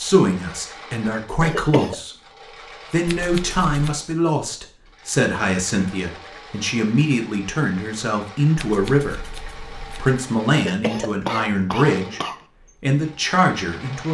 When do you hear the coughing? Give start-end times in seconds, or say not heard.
1.4-1.9, 10.5-12.4.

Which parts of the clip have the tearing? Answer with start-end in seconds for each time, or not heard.
not heard.